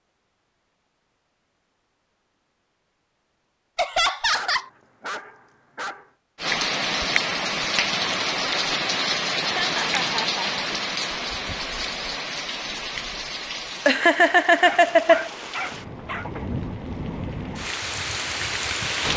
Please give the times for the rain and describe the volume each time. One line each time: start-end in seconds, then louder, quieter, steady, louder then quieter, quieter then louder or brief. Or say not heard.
6.3-19.1 quieter then louder.